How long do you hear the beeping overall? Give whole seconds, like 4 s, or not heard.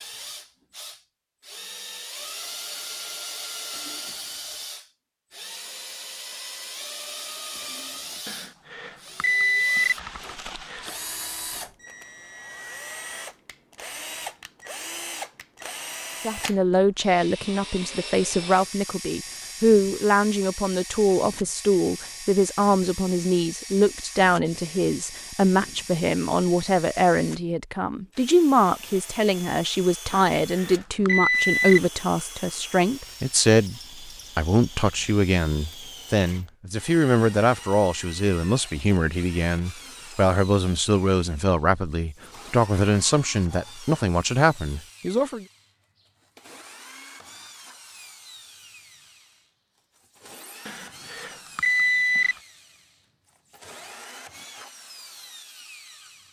6 s.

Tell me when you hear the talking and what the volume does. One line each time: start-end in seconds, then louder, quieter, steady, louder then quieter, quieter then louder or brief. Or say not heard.
16.2-45.5 steady.